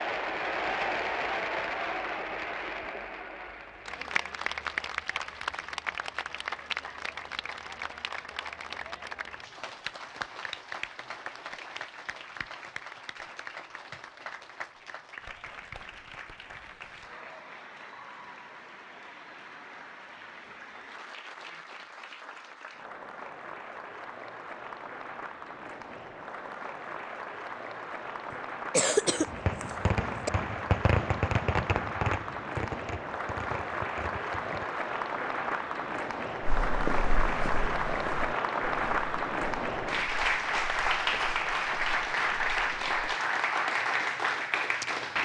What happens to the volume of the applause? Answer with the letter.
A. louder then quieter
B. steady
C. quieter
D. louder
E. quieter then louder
E.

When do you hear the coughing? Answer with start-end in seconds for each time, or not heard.
28.3-30.3.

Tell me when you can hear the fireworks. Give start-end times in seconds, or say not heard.
29.1-34.6.